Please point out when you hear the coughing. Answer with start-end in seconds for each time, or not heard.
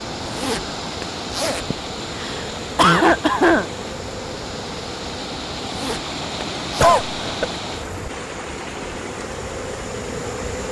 1.7-3.6, 6.8-7.5.